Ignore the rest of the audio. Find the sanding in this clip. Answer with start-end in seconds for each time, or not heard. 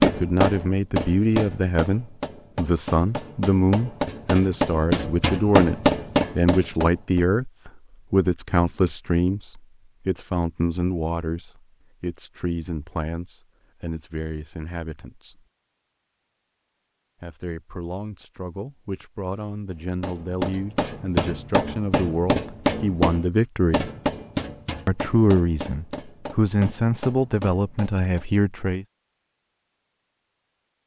not heard.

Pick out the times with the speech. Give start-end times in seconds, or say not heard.
0.0-15.4, 17.2-23.9, 24.9-28.9.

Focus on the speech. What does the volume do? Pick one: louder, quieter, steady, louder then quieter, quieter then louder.
quieter then louder.